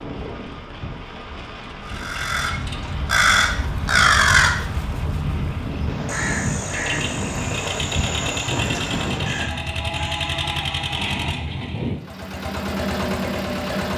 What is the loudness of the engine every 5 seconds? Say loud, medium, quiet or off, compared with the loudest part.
quiet, loud, loud.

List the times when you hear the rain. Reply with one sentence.
You can hear the rain from 0.0 to 9.5 s.